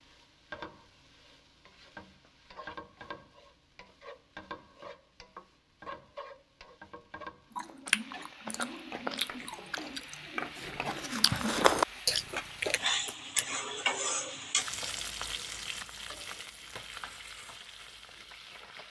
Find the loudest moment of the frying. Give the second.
13 s.